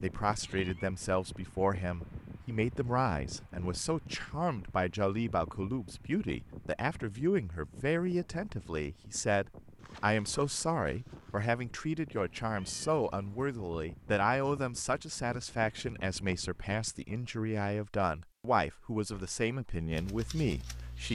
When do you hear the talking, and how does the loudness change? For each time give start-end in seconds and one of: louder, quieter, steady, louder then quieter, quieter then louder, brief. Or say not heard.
0.0-21.1 steady.